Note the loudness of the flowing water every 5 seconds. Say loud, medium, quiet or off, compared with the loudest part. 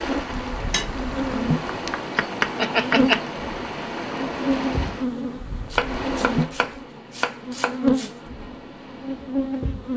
loud, medium.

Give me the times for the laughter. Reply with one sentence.
The laughter can be heard from 1.9 to 3.2 s.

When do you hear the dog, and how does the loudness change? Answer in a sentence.
The dog can't be heard in this clip.